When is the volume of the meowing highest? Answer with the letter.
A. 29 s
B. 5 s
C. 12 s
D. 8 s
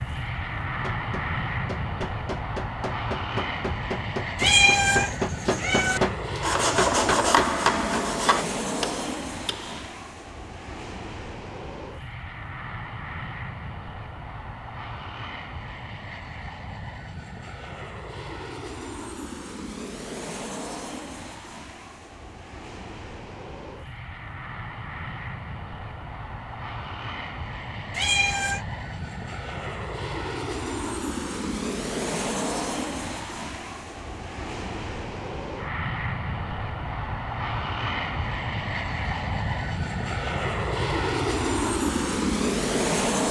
B.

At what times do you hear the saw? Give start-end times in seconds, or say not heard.
6.4-8.4.